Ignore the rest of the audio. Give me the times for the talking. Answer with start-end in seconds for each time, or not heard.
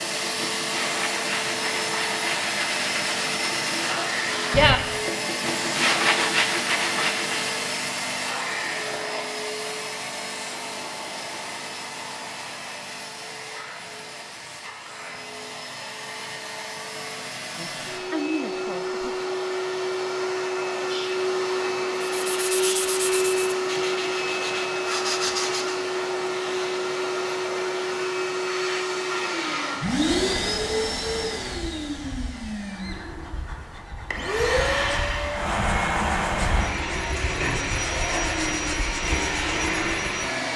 17.6-19.2.